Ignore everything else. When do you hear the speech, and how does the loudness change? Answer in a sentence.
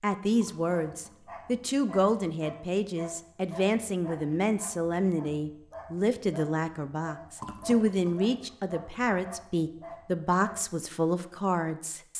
The speech can be heard from 0.0 to 12.1 s, at a steady volume.